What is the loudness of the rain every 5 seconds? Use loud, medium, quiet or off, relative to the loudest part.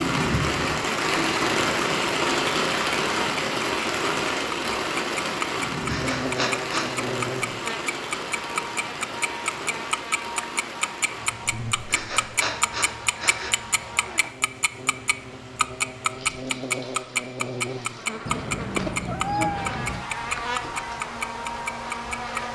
loud, medium, quiet, quiet, quiet.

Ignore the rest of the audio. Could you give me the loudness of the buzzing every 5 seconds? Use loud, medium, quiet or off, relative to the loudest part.
off, loud, medium, loud, loud.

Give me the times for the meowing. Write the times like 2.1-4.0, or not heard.
18.2-20.1.